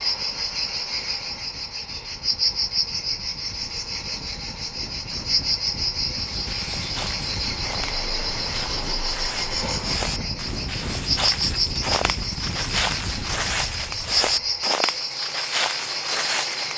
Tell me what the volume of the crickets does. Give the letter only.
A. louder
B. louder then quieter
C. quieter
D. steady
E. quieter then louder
D.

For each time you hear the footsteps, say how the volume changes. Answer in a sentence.
You can hear the footsteps from 6.2 to 16.7 s, getting louder.